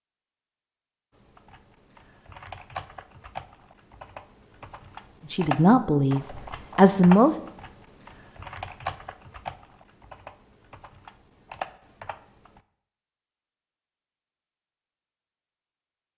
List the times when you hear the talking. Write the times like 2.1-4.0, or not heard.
5.3-7.3.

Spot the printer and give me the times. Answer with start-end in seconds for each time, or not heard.
not heard.